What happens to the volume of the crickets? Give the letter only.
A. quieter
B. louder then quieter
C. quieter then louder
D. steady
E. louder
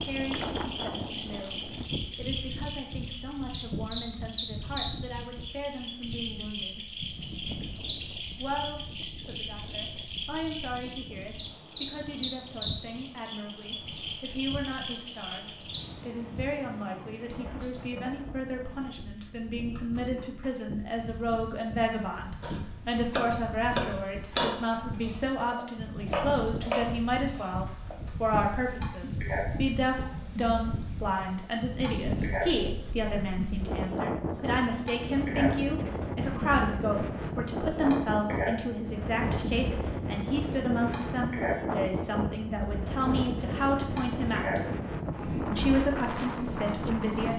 D.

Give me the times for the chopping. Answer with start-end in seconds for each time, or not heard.
22.4-28.0.